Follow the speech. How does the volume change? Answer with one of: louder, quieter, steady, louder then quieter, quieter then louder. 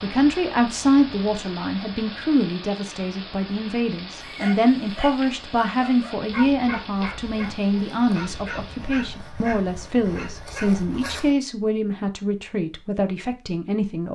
steady.